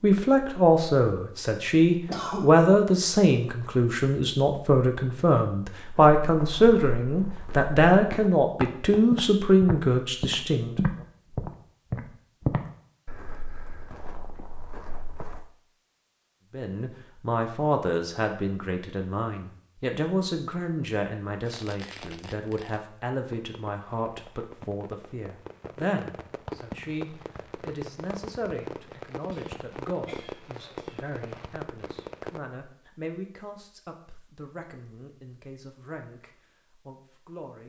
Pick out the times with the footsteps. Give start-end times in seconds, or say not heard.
6.2-15.4.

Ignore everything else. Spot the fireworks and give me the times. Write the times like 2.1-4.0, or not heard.
21.4-32.4.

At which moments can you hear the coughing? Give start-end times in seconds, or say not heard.
2.0-2.5, 29.3-31.1.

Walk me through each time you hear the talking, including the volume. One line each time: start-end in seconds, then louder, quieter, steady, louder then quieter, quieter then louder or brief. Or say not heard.
0.0-10.8 steady
16.5-37.6 quieter.